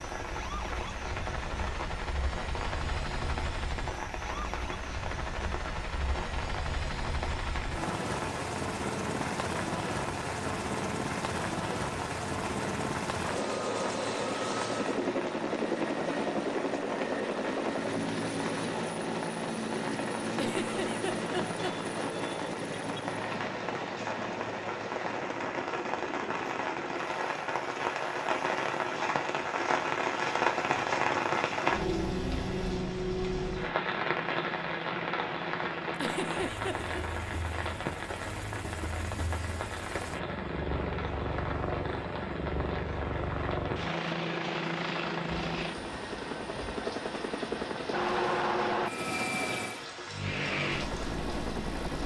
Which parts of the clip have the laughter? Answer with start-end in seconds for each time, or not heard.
20.4-22.1, 36.0-37.0.